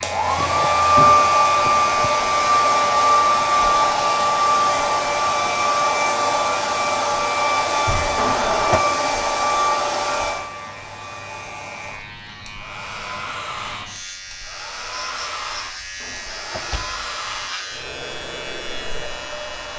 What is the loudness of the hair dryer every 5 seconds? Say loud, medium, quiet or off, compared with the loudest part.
loud, loud, quiet, quiet.